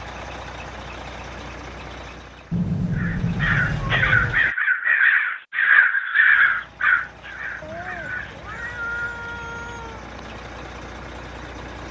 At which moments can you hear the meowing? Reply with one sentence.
You can hear the meowing from 2.5 to 4.4 s and from 7.6 to 10.1 s.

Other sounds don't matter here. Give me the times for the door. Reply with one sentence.
You can't hear the door here.